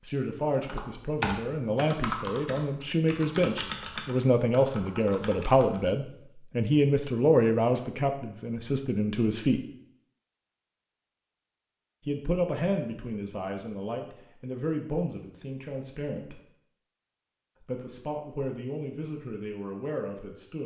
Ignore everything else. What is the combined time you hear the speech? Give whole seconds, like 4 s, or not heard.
17 s.